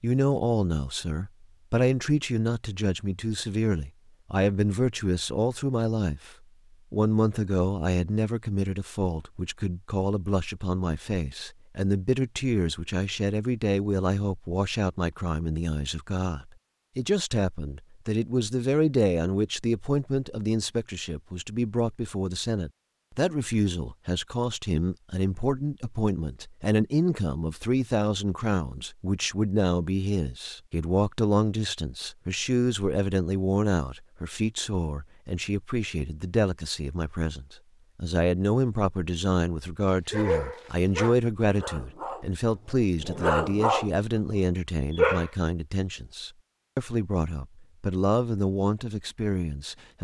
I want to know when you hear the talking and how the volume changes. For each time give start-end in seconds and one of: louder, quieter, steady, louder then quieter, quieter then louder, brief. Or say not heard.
0.0-49.9 steady.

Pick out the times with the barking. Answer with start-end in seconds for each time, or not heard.
40.1-45.3.